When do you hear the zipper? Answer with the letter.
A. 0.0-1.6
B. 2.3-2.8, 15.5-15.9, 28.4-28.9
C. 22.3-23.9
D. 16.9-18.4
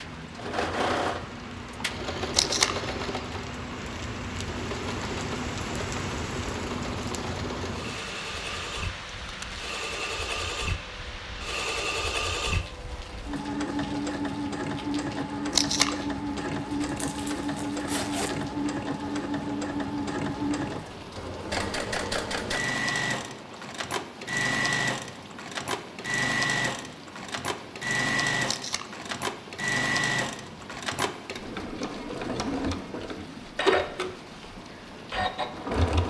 D.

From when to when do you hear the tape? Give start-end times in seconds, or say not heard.
2.3-2.8, 15.5-15.9, 28.4-28.9.